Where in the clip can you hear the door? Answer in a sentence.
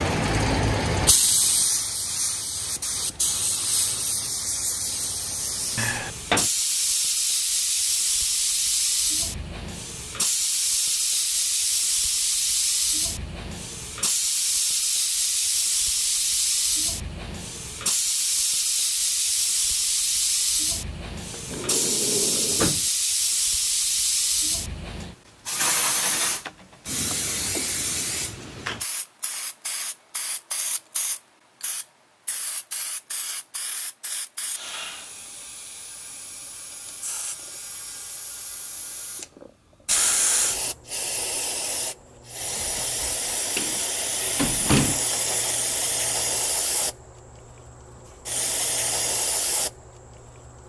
You can hear the door from 5.8 to 6.5 s, from 21.3 to 22.9 s and from 43.5 to 45.0 s.